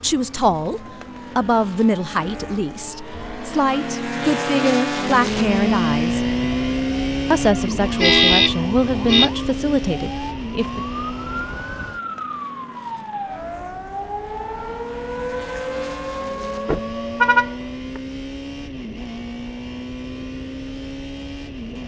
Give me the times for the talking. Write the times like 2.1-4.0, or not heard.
0.0-6.2, 7.3-10.8.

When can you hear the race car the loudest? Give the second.
6 s.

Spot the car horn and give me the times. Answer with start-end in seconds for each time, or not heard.
8.0-9.3, 16.6-18.0.